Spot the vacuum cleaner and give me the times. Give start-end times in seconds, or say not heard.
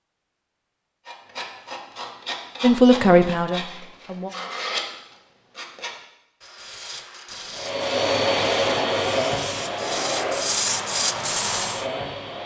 7.5-12.4.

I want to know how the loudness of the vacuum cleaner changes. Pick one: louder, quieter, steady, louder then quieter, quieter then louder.
quieter.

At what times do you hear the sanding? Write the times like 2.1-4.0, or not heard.
1.1-11.8.